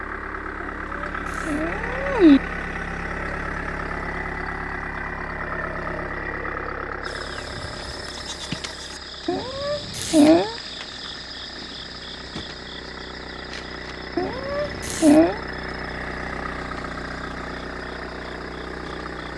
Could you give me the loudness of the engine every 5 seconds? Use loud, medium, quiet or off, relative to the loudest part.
loud, loud, medium, loud.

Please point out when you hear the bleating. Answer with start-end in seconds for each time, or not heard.
7.0-9.0.